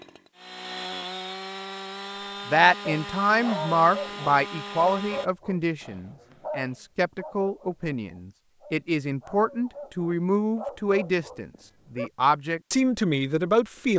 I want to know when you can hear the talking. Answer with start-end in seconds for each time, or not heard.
2.5-13.9.